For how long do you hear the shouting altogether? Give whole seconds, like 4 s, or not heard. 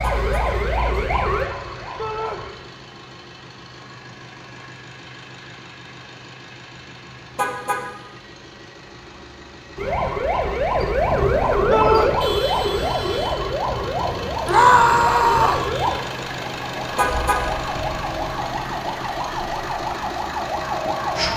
2 s.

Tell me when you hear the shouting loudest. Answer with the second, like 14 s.
15 s.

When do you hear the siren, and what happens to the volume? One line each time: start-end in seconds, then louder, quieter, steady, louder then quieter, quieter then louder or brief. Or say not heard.
0.0-2.5 brief
9.8-21.3 quieter.